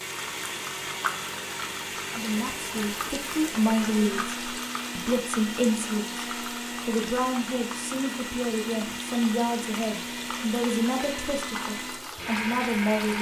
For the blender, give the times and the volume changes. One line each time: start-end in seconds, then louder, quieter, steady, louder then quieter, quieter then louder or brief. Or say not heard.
0.0-13.1 steady.